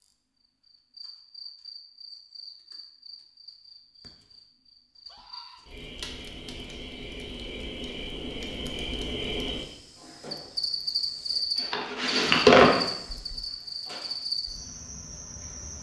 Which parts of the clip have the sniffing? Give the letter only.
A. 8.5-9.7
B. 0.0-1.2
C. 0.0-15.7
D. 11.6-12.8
D.